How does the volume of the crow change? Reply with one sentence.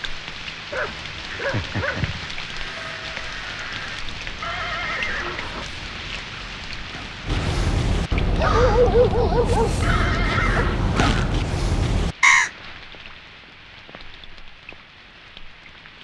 The loudness of the crow goes down, then up.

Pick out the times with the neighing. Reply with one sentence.
You can hear the neighing from 4.4 to 5.7 s and from 9.8 to 11.1 s.